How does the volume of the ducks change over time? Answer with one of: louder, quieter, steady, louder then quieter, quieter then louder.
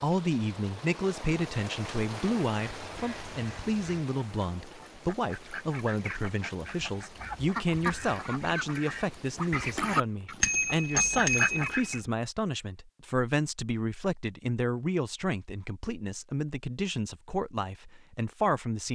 louder.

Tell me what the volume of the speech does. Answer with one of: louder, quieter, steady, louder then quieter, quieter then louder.
steady.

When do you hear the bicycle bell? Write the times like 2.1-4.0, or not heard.
10.4-12.0.